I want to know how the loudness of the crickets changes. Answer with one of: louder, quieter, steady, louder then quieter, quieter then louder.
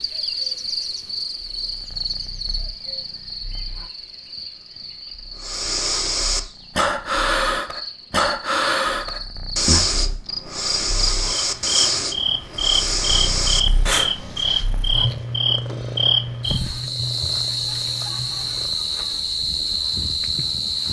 quieter then louder.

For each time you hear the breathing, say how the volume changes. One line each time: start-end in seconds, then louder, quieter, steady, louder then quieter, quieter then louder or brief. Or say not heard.
5.4-14.4 steady.